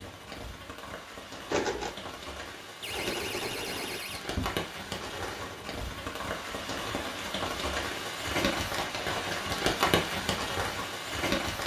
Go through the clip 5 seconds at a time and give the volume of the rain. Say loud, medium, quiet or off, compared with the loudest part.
medium, loud, loud.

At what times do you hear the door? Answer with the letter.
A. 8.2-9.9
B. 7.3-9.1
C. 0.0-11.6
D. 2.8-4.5
D.